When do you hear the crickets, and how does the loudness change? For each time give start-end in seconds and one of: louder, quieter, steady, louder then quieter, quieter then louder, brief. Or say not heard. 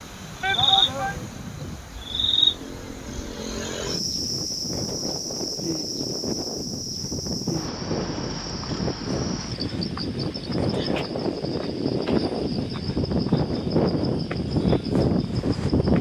0.0-15.9 quieter.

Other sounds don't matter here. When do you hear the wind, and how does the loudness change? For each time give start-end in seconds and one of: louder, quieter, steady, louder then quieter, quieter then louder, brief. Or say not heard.
0.0-15.9 louder.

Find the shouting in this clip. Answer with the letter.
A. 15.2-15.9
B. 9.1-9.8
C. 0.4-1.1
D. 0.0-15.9
C.